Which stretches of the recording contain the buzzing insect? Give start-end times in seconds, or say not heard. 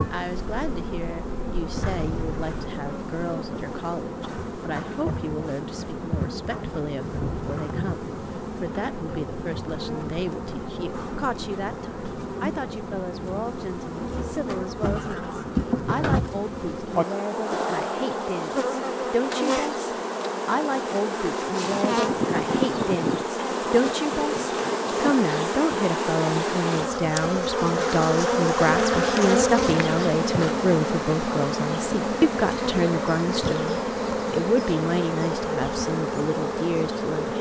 0.0-37.3.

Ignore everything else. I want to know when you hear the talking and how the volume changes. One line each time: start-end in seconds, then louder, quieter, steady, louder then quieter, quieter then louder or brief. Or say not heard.
0.1-37.3 louder.